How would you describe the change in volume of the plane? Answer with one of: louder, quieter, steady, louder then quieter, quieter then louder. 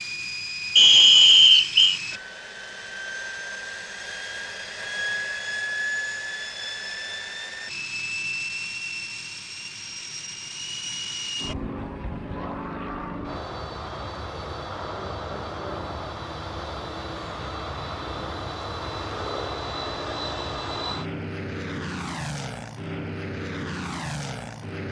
steady.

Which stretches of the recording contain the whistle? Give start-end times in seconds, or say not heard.
0.8-2.0.